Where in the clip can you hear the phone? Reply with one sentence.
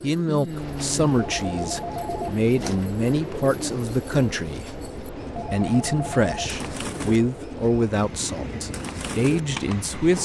You can hear the phone from 1.1 to 2.9 s and from 5.3 to 6.5 s.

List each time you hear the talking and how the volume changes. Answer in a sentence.
You can hear the talking from 0.0 to 10.2 s, at a steady volume.